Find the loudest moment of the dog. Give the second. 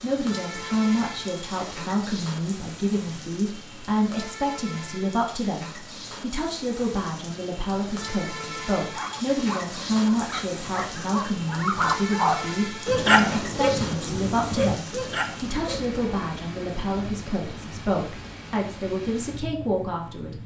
13 s.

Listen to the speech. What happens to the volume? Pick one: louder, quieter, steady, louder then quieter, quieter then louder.
steady.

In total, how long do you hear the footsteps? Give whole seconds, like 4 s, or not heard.
not heard.